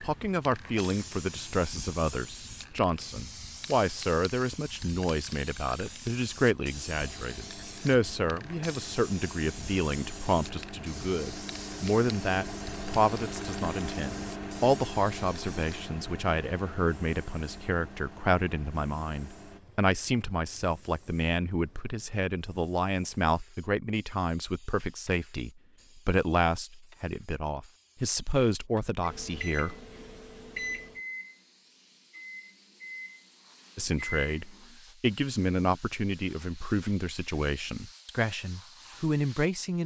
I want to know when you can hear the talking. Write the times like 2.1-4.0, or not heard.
0.0-29.8, 33.8-39.8.